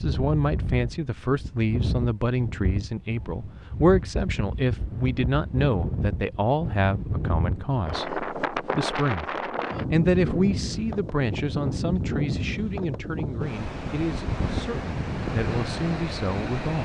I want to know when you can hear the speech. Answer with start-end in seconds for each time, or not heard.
0.0-16.8.